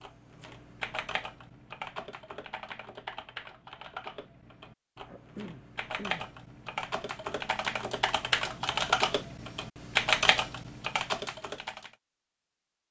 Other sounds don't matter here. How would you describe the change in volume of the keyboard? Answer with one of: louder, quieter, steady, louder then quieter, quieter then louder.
louder.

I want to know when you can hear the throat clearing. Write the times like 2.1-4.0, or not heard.
5.0-6.3.